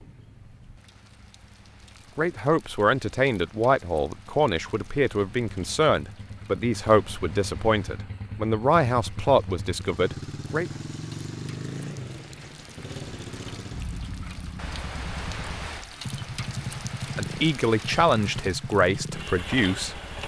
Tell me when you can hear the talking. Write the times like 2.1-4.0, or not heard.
2.1-10.7, 17.1-20.1.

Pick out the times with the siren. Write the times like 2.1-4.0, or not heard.
not heard.